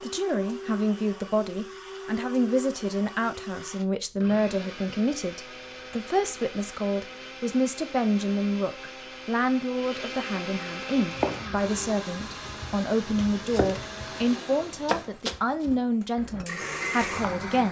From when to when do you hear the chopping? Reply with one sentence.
You can hear the chopping from 10.9 to 17.4 s.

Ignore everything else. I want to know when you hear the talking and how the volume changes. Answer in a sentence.
The talking can be heard from 0.0 to 17.6 s, at a steady volume.